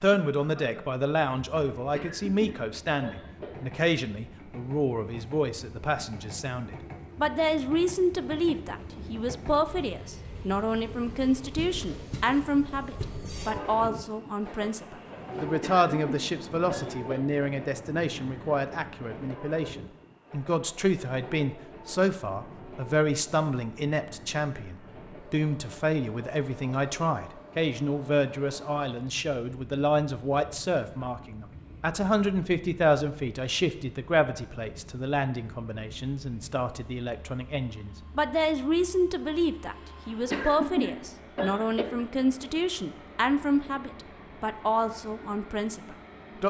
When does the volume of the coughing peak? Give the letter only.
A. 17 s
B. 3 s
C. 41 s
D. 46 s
C.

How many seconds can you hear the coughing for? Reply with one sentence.
The coughing can be heard for 5 seconds in total.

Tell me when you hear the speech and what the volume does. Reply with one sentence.
The speech can be heard from 0.0 to 46.4 s, at a steady volume.